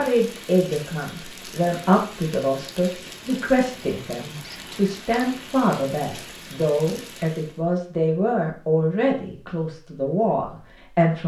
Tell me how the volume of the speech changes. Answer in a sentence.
The loudness of the speech stays about the same.